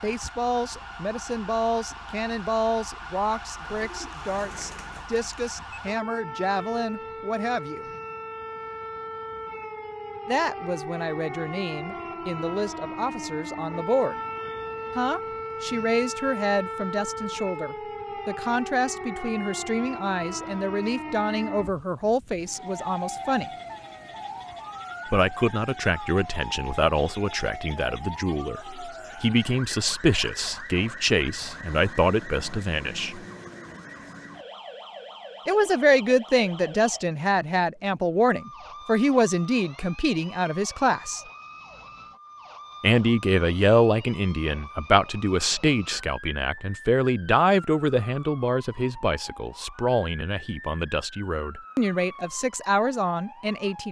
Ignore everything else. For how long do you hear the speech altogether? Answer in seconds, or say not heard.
45 s.